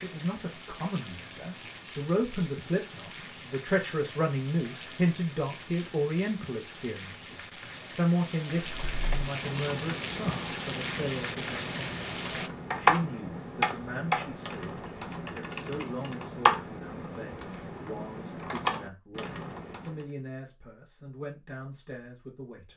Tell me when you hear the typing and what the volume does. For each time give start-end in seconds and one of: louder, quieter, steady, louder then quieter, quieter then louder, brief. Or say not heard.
8.6-20.1 louder then quieter.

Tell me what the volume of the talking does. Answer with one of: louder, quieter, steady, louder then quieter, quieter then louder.
quieter.